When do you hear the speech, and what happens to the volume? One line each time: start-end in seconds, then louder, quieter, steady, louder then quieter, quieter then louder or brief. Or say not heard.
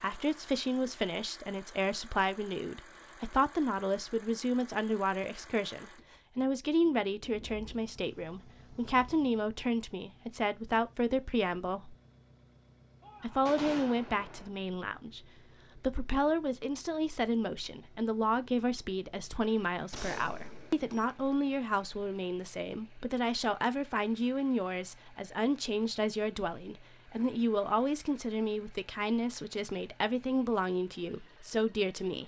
0.0-11.9 steady
13.2-32.2 steady.